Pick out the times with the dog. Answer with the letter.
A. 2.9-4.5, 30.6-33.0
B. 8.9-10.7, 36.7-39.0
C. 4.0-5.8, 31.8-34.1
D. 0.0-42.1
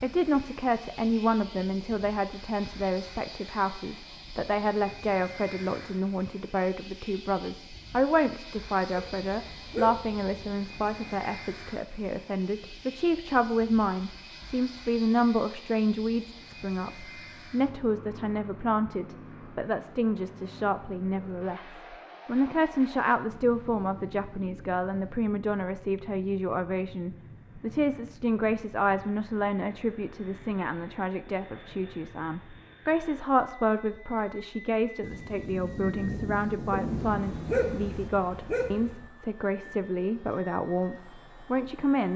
B.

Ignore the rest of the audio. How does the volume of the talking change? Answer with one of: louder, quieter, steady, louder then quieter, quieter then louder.
steady.